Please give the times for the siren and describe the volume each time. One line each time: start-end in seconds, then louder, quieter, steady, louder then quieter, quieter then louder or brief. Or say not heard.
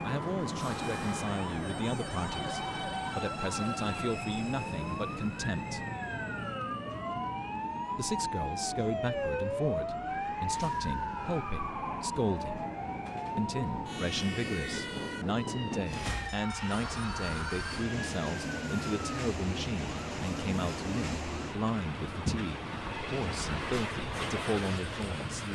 0.0-25.5 louder then quieter.